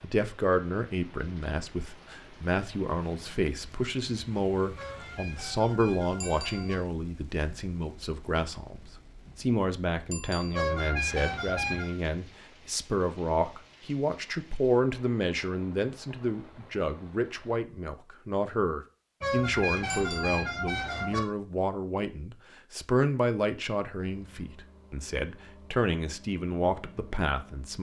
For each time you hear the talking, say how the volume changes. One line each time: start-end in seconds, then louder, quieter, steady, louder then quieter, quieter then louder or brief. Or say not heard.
0.0-27.7 steady.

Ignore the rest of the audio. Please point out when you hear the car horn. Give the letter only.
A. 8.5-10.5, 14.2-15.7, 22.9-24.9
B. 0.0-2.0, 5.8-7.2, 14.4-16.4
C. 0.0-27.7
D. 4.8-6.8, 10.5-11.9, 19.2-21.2
D.